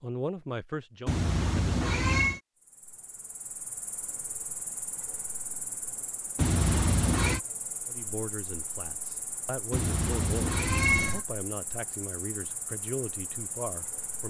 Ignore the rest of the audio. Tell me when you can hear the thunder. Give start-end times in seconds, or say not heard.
not heard.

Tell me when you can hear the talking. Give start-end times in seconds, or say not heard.
0.0-1.9, 7.8-14.2.